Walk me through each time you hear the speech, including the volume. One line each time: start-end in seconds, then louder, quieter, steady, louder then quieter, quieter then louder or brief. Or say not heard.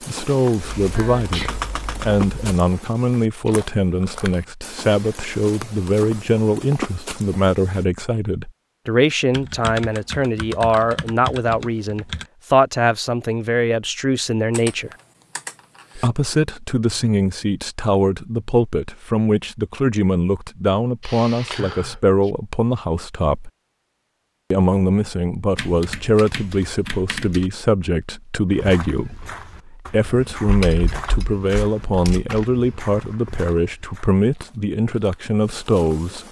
0.1-14.9 steady
15.9-23.5 steady
24.5-36.2 steady.